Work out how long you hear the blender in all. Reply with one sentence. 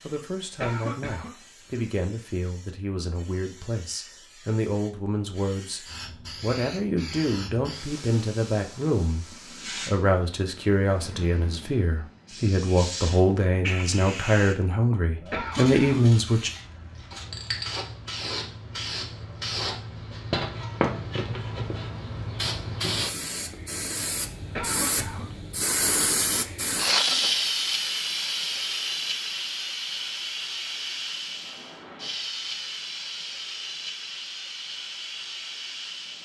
You can't hear the blender here.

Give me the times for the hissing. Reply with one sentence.
You can hear the hissing from 0.0 to 36.1 s.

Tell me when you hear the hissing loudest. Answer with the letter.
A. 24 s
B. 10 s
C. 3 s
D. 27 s
D.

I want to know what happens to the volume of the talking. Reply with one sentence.
The loudness of the talking goes up.